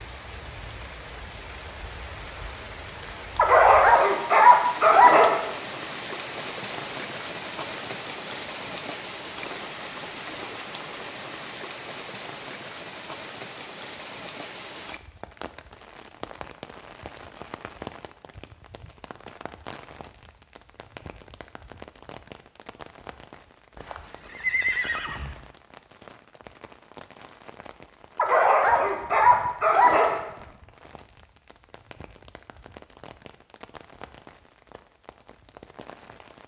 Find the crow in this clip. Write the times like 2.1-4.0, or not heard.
not heard.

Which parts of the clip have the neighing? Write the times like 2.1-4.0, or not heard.
23.8-25.4.